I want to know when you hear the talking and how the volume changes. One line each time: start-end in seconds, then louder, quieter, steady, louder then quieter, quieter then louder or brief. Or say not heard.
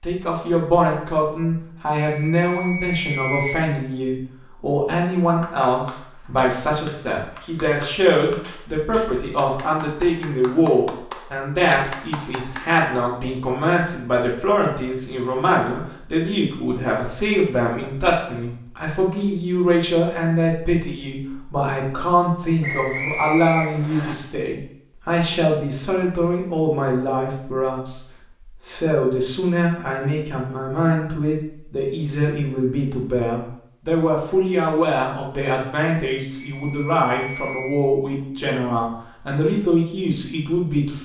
0.0-28.0 steady
28.6-40.9 steady.